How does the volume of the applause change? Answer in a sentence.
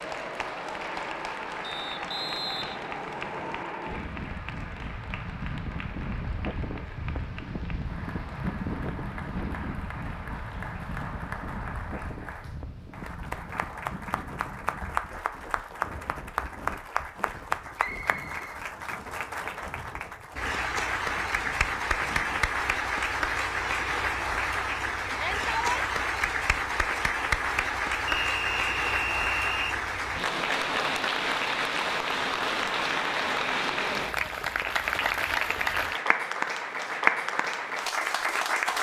The loudness of the applause goes up.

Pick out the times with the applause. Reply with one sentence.
You can hear the applause from 0.0 to 38.7 s.